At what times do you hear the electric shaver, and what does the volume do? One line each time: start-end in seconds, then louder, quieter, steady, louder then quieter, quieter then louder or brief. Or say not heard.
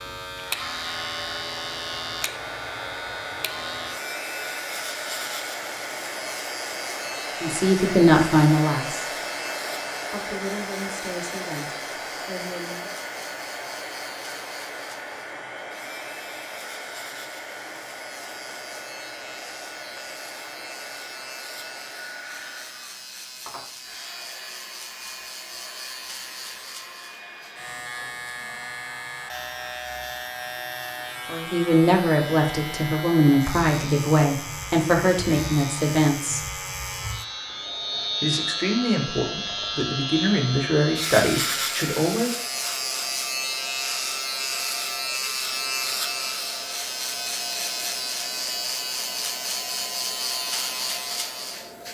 0.0-51.9 quieter then louder.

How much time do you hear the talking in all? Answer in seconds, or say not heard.
14 s.